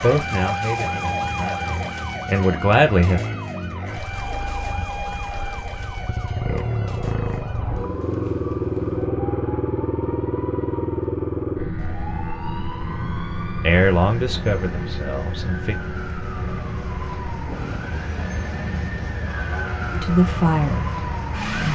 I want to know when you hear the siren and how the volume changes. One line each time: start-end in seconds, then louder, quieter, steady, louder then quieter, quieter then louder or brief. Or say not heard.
0.0-21.6 quieter then louder.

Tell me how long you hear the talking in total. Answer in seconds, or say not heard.
7 s.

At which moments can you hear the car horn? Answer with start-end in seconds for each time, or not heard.
not heard.